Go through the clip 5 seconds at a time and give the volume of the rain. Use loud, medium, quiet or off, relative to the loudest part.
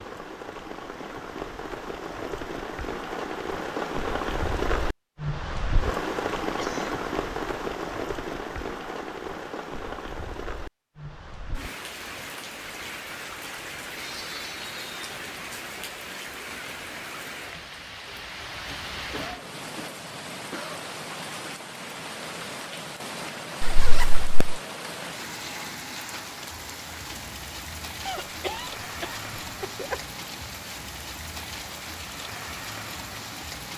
loud, loud, medium, medium, medium, medium, medium.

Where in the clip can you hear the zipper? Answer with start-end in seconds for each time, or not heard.
23.6-24.6.